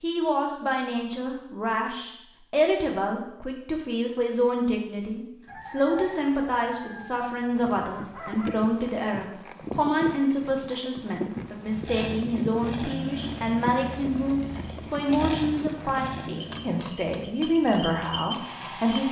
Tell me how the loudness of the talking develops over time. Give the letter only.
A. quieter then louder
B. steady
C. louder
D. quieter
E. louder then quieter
B.